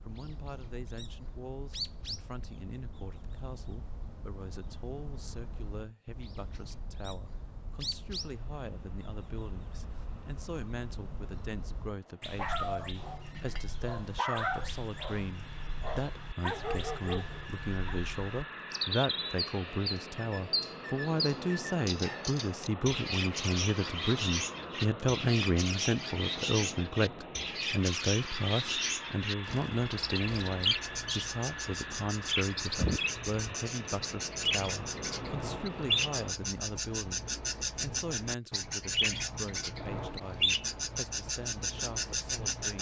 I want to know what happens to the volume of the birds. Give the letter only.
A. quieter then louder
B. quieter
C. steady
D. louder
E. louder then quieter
D.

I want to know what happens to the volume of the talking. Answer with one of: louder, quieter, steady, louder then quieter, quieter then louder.
louder then quieter.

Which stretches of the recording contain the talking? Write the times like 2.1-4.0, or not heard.
0.1-42.7.